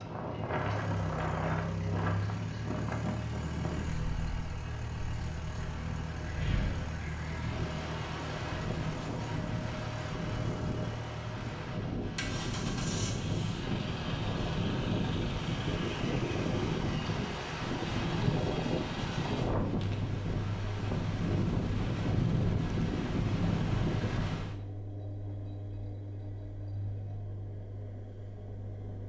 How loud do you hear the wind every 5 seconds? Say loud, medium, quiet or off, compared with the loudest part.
medium, medium, loud, loud, loud, off.